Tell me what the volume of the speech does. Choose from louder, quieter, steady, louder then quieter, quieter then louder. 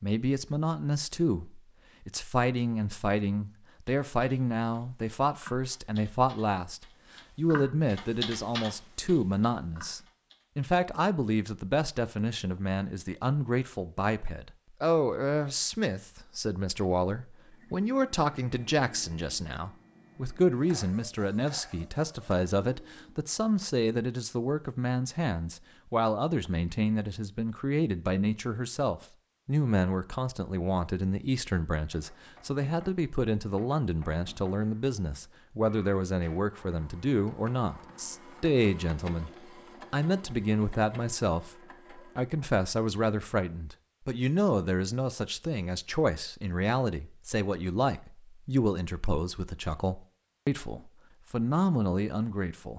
steady.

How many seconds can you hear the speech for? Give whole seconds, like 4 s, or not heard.
52 s.